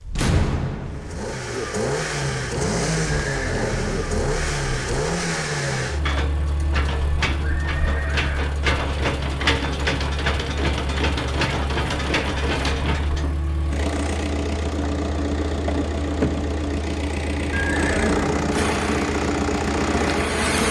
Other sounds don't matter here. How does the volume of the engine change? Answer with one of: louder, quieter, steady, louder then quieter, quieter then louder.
steady.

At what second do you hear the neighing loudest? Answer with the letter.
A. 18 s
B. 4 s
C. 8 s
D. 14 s
A.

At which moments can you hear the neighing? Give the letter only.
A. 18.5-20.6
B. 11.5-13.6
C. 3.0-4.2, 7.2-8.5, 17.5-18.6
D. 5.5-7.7
C.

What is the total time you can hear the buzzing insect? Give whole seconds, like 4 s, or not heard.
2 s.